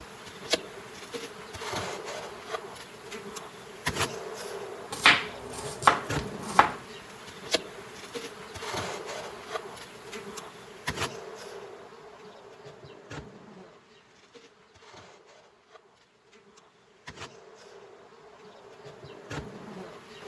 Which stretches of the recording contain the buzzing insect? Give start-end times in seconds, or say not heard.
0.0-20.2.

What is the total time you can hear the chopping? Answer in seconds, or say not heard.
2 s.